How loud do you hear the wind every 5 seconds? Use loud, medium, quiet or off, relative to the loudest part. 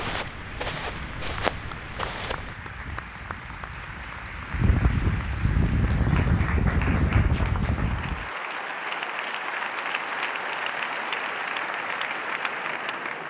medium, loud, off.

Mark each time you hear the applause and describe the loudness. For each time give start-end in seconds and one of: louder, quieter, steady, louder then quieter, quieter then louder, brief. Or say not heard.
0.1-13.2 louder.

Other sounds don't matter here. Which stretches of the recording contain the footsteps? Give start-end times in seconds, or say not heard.
0.0-2.5.